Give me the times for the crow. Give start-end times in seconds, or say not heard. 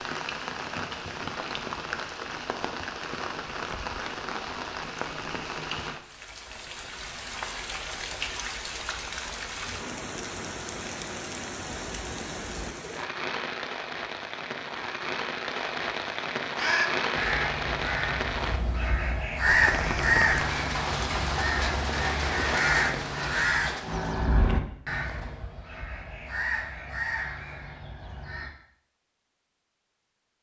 16.6-28.5.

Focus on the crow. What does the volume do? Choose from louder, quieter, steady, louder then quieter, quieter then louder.
louder then quieter.